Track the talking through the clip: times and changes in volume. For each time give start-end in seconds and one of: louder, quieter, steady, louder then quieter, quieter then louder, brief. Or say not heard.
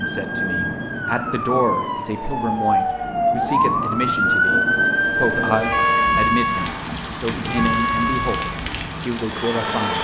0.0-9.9 steady.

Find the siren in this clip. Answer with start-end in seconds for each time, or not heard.
0.0-9.9.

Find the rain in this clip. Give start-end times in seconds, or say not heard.
0.0-9.9.